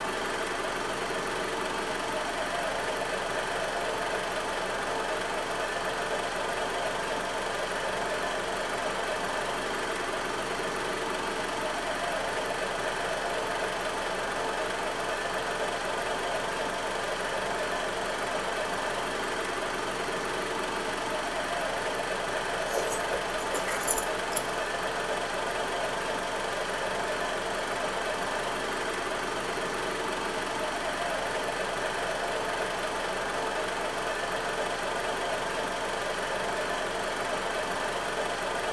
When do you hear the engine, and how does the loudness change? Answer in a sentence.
You can hear the engine from 0.0 to 38.6 s, at a steady volume.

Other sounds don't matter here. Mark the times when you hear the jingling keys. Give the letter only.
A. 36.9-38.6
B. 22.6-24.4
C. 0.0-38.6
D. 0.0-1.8
B.